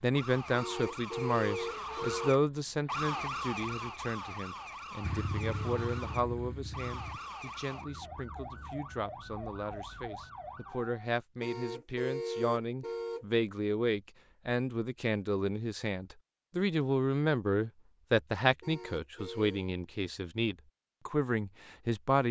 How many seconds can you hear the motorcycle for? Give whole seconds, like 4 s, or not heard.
2 s.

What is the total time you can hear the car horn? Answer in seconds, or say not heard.
5 s.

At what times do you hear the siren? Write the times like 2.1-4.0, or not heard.
0.0-10.9.